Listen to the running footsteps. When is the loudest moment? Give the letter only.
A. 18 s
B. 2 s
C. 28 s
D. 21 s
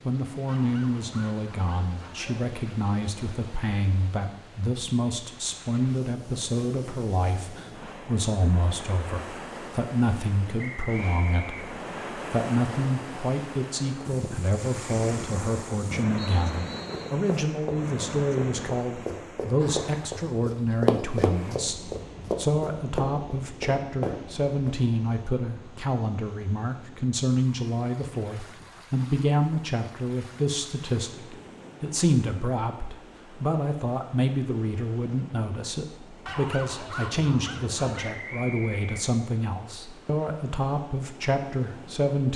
D.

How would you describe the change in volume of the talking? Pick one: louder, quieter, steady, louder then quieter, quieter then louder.
steady.